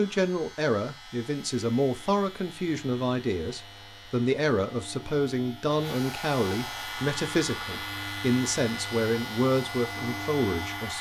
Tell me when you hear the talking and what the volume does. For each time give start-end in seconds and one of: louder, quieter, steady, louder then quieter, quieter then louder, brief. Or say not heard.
0.0-10.9 steady.